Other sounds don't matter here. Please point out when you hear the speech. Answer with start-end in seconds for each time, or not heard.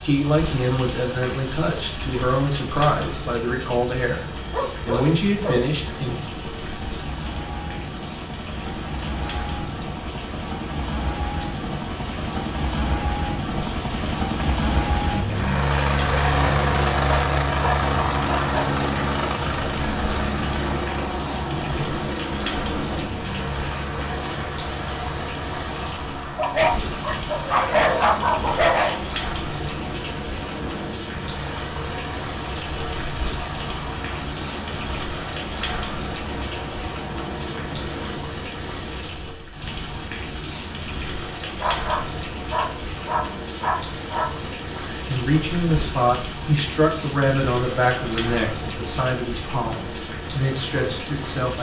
0.0-6.2, 44.9-51.5.